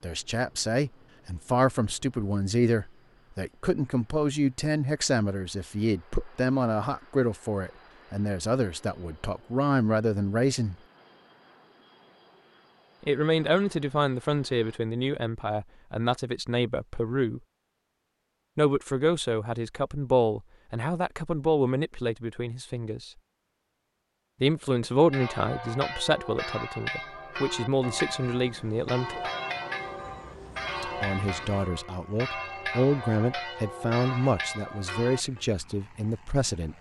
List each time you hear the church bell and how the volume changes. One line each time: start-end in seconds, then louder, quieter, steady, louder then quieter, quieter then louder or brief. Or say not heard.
25.0-35.5 steady.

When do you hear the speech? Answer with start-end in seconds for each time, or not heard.
0.0-10.8, 13.0-17.4, 18.6-23.1, 24.4-29.2, 30.8-36.7.